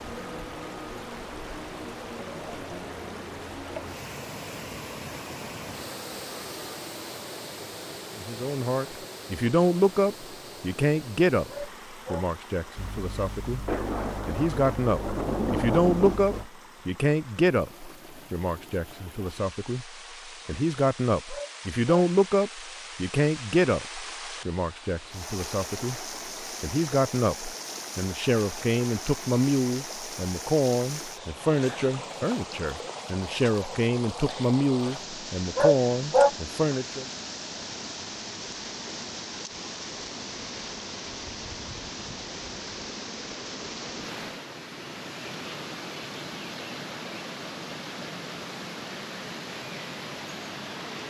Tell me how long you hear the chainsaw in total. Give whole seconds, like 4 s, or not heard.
not heard.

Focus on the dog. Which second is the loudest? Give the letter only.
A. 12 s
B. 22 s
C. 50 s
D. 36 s
D.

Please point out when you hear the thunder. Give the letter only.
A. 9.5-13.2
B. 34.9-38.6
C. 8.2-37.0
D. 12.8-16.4
D.